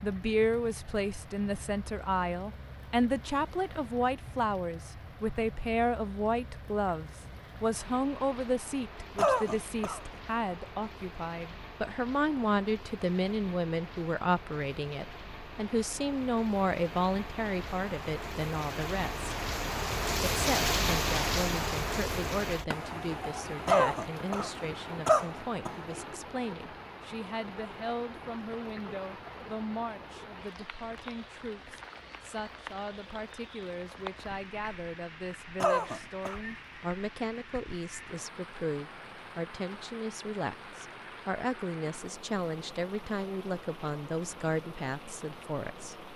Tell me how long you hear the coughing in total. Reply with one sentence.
The coughing can be heard for 4 seconds in total.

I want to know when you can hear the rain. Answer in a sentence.
You can hear the rain from 0.0 to 46.1 s.